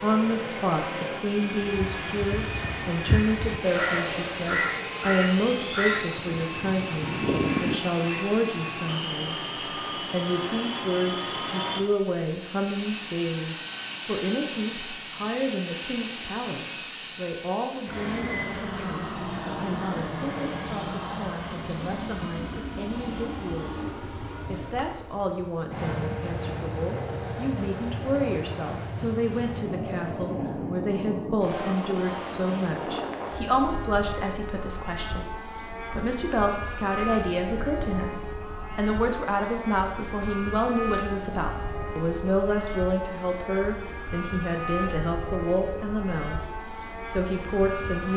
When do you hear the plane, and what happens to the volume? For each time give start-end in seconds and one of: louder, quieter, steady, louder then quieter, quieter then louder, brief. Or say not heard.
0.0-48.1 steady.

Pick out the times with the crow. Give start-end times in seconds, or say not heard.
1.7-8.2.